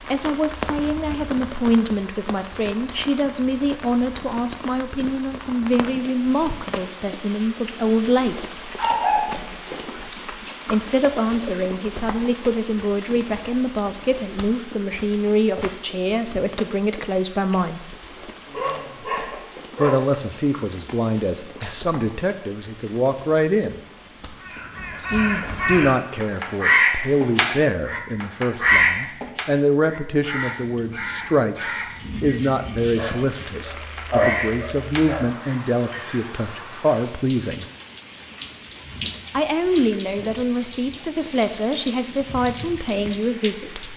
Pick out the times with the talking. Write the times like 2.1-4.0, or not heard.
0.1-8.7, 10.7-17.9, 19.8-23.8, 25.1-37.6, 39.3-43.9.